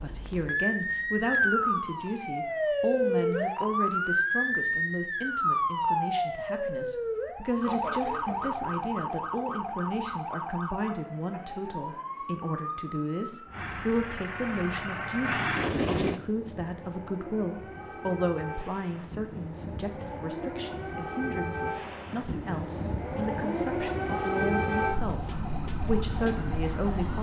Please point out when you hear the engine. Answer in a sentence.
You can hear the engine from 13.5 to 16.2 s.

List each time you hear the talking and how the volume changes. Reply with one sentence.
You can hear the talking from 0.0 to 27.1 s, at a steady volume.